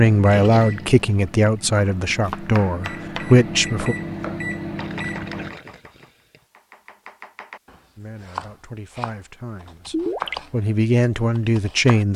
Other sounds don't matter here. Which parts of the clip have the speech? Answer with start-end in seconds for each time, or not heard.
0.0-4.0, 8.0-12.1.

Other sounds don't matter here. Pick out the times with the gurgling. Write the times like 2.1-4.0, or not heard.
0.2-2.1, 4.8-6.4, 9.9-10.4.